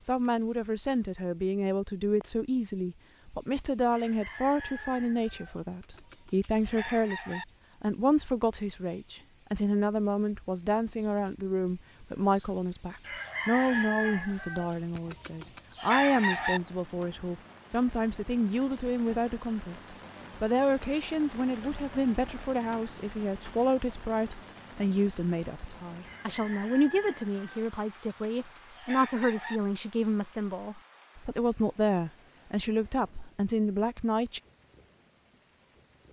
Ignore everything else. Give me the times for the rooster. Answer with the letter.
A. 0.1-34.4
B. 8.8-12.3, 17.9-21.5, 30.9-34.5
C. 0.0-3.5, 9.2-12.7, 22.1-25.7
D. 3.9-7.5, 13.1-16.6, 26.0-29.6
D.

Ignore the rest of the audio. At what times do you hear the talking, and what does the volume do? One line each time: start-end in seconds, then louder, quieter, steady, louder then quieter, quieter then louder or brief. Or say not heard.
0.1-34.4 steady.